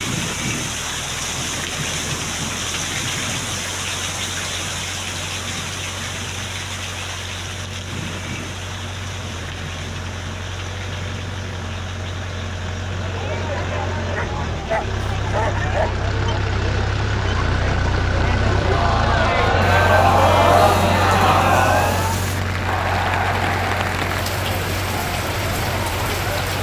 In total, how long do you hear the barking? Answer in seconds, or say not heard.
2 s.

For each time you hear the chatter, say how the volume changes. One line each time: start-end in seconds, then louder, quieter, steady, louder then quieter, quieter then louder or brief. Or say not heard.
12.9-26.2 louder then quieter.